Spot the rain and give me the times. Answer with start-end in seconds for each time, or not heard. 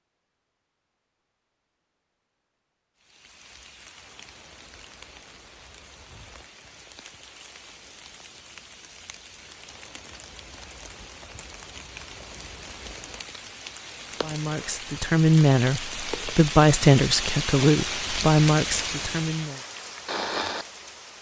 3.0-21.1.